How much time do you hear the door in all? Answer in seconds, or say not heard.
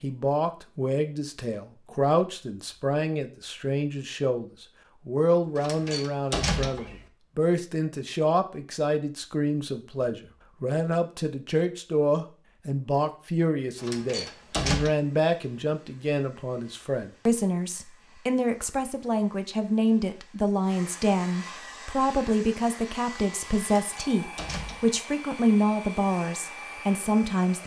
4 s.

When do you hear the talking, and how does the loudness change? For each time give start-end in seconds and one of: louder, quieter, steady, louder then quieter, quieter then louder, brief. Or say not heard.
0.0-27.6 steady.